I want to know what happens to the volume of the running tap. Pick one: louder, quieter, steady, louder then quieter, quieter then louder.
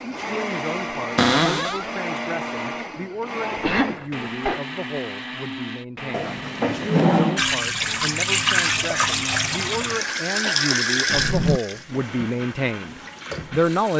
quieter.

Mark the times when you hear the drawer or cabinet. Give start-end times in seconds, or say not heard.
1.1-1.9, 6.1-7.5, 11.1-11.6.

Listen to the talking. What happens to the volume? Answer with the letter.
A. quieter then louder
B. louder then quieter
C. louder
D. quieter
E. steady
C.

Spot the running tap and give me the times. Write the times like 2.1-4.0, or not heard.
7.3-13.9.